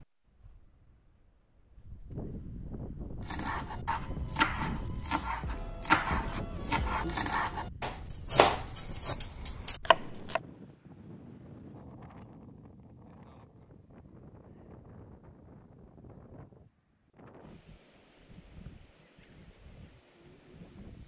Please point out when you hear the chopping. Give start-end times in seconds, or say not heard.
3.2-10.4.